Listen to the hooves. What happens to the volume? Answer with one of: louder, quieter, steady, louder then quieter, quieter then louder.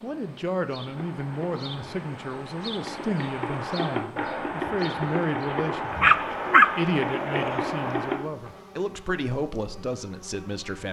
louder.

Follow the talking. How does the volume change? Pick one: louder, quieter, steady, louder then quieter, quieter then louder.
steady.